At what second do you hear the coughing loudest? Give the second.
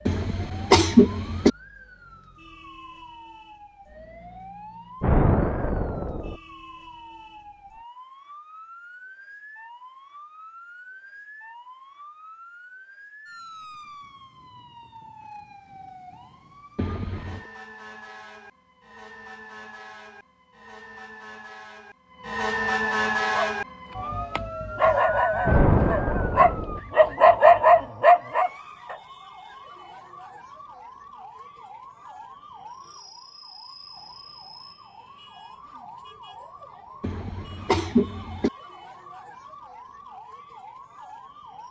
1 s.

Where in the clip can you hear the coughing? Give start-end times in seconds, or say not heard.
0.1-1.5, 16.8-17.4, 37.0-38.5.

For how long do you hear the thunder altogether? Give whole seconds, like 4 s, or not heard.
3 s.